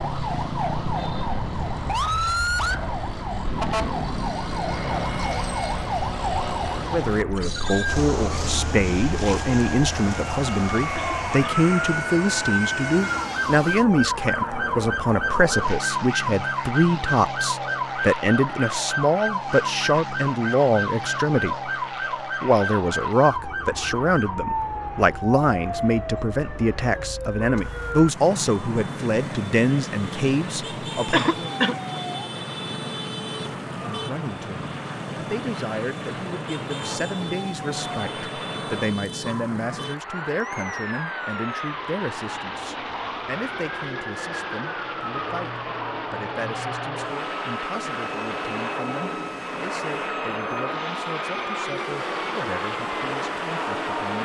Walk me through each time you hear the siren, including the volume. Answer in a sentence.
The siren can be heard from 0.0 to 54.2 s, getting quieter.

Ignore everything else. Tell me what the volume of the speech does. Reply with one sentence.
The volume of the speech goes down.